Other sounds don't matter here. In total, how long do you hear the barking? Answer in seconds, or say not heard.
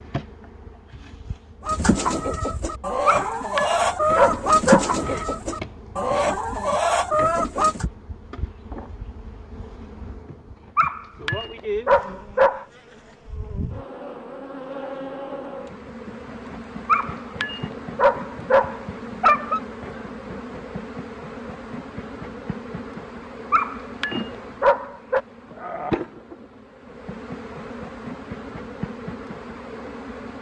8 s.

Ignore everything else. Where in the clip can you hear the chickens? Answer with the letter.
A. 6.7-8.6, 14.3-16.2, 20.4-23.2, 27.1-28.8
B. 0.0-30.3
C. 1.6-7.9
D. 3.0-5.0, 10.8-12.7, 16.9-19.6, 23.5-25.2
C.